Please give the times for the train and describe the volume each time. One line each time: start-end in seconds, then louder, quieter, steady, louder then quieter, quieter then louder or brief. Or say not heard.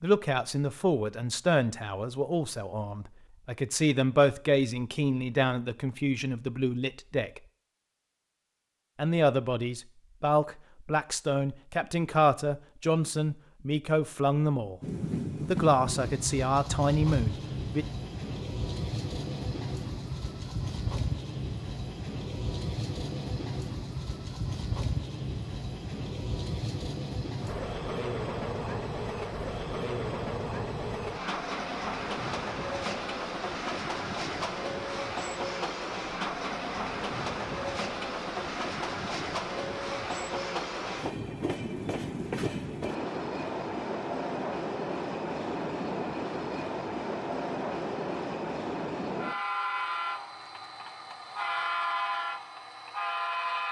14.8-53.6 steady.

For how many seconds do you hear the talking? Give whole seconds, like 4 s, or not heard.
16 s.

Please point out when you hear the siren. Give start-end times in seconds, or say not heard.
not heard.